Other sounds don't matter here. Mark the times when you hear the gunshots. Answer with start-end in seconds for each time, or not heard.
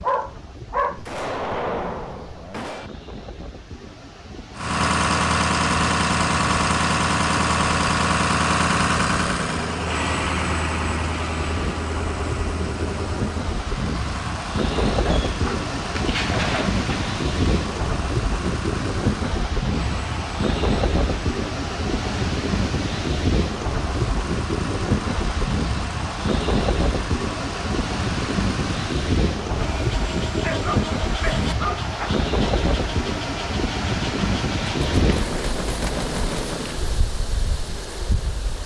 0.9-2.9, 34.8-36.8.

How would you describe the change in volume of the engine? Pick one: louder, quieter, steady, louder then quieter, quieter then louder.
quieter.